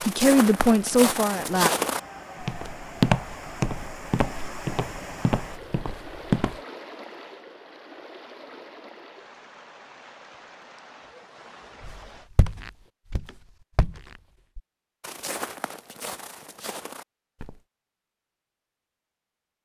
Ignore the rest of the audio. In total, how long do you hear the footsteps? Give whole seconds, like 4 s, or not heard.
12 s.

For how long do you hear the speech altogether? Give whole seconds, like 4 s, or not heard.
2 s.